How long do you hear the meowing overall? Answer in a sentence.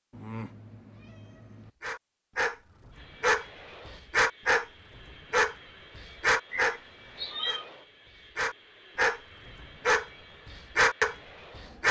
You can hear the meowing for 3 seconds altogether.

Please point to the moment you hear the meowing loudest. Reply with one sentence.
The volume of the meowing peaks at 7 seconds.